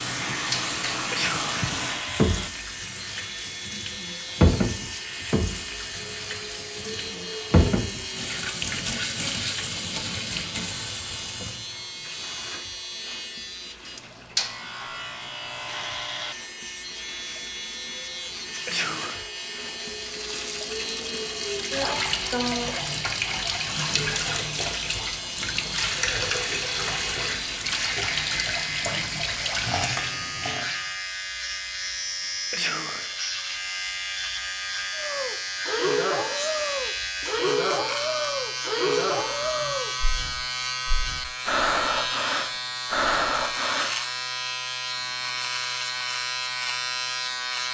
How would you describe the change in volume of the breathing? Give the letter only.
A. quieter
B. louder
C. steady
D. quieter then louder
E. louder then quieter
C.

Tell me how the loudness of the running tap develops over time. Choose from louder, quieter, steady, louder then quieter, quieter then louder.
quieter then louder.